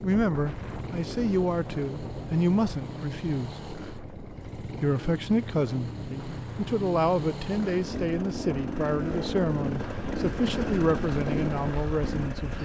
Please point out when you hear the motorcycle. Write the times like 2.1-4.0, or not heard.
0.0-12.5.